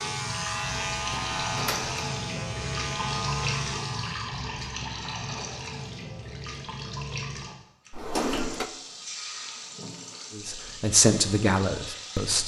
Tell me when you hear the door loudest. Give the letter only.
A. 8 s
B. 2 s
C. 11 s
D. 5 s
A.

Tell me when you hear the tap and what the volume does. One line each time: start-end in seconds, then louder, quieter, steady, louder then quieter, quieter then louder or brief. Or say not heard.
0.0-12.4 quieter.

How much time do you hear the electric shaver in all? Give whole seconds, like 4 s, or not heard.
4 s.